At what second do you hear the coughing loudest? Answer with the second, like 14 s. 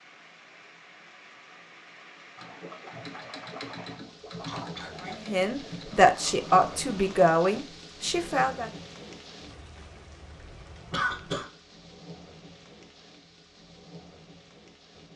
11 s.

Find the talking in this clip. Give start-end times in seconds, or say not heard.
5.0-8.7.